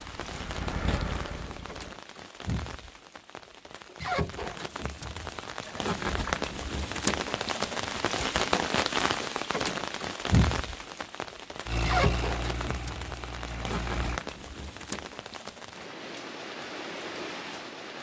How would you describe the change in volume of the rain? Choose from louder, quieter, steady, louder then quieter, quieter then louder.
louder then quieter.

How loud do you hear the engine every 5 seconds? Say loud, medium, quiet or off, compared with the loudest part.
loud, off, loud, off.